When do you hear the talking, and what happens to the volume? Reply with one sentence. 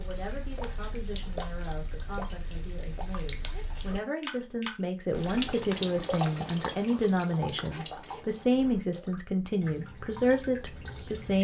The talking can be heard from 0.0 to 11.3 s, getting louder.